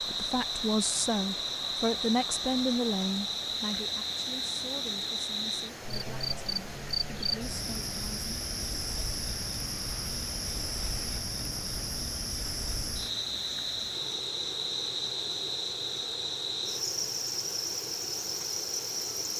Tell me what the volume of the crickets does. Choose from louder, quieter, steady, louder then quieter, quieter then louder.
steady.